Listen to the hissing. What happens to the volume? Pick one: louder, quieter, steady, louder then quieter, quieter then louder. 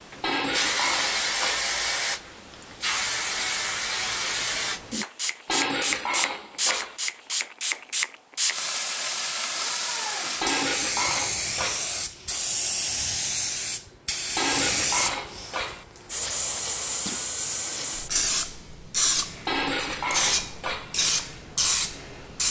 steady.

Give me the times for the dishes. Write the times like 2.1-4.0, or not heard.
0.2-1.7, 5.5-7.0, 10.4-11.9, 14.3-15.8, 19.4-20.9.